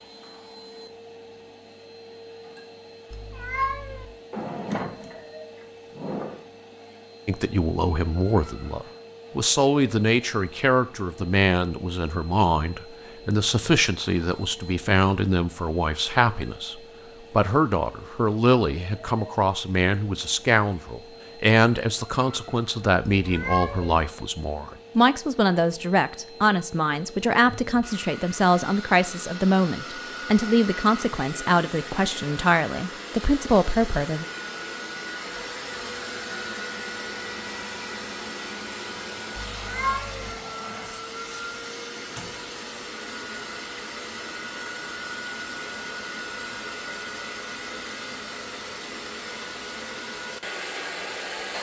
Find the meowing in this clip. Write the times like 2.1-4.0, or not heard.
3.1-4.0, 23.2-24.0, 39.5-40.4.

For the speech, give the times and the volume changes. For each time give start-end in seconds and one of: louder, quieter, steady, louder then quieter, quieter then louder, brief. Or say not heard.
7.2-34.2 steady.